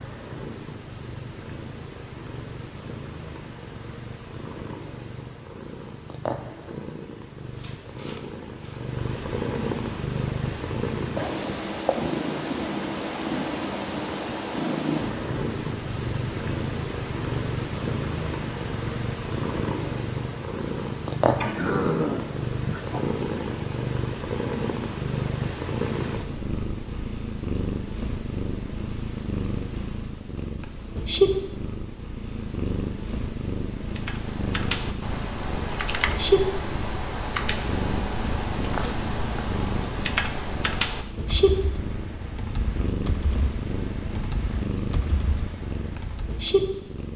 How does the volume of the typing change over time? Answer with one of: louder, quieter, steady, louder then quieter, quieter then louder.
quieter.